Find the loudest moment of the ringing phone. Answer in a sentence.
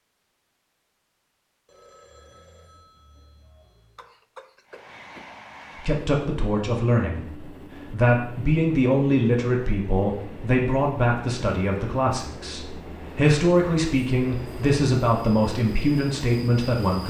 The loudest moment of the ringing phone is at 2 seconds.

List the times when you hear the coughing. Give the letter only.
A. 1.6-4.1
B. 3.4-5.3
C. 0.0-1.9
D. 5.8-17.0
B.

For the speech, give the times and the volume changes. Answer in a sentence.
The speech can be heard from 5.8 to 17.0 s, at a steady volume.